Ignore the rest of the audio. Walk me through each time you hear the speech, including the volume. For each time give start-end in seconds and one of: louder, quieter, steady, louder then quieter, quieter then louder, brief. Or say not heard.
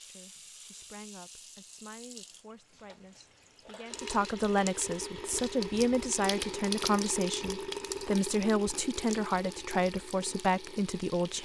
0.0-11.4 louder.